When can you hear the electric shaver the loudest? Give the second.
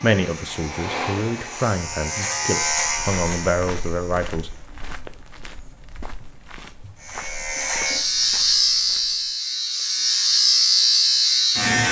11 s.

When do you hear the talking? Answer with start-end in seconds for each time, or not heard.
0.0-4.5.